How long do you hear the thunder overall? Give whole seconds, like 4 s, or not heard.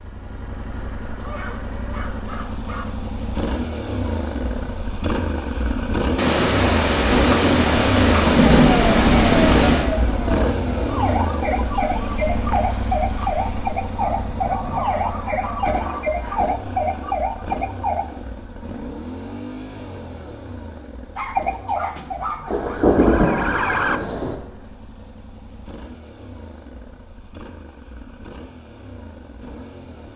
6 s.